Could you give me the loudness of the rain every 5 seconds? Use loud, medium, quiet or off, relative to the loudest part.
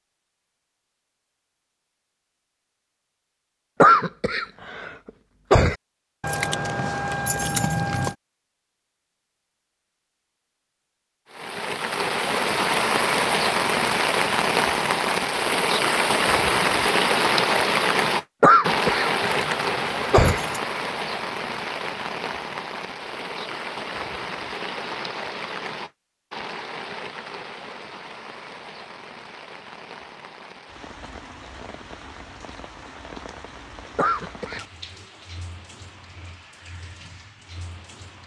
off, off, loud, loud, medium, quiet, quiet, quiet.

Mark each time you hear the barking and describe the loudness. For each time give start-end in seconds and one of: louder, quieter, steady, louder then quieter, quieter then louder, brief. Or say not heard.
not heard.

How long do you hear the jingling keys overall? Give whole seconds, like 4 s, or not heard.
3 s.